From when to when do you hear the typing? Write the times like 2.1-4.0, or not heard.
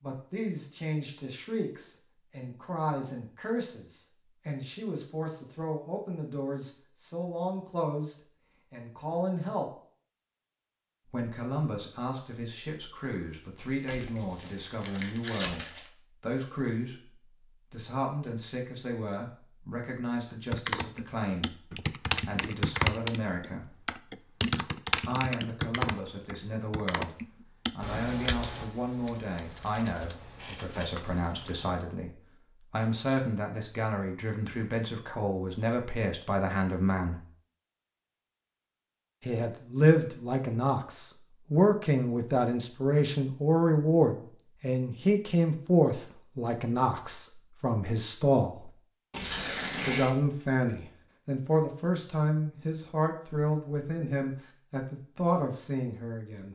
20.5-31.8.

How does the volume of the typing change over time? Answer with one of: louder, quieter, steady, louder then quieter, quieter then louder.
quieter.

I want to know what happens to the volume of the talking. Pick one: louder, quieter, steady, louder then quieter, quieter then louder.
louder.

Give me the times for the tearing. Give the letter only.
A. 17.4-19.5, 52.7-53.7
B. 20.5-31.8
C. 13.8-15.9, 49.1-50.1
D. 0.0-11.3
C.